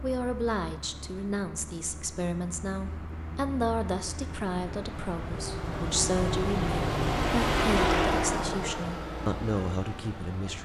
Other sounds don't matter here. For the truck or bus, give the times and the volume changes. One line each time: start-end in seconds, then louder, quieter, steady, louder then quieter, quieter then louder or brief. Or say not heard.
0.0-10.6 louder then quieter.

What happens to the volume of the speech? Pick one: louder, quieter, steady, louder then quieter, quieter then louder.
steady.